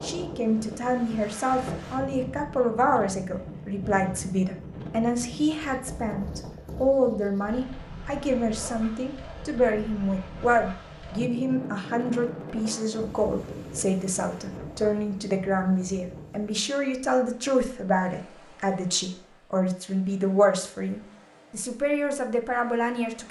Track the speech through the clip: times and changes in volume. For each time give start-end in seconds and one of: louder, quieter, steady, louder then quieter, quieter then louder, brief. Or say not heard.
0.0-23.2 steady.